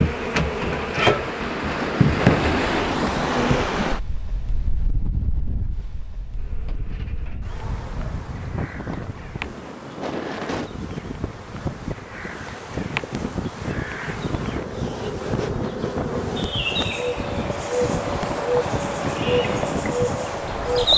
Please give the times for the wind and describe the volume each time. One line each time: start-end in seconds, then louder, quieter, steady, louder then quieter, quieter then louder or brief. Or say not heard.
0.1-20.9 quieter then louder.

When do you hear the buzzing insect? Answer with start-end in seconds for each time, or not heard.
0.0-3.6, 6.3-20.9.